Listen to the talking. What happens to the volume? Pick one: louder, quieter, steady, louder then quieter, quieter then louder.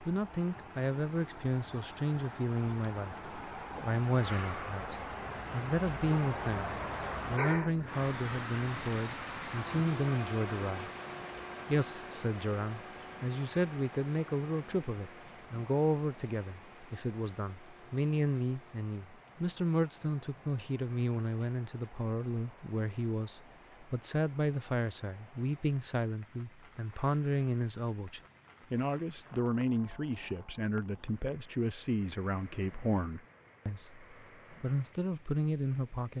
steady.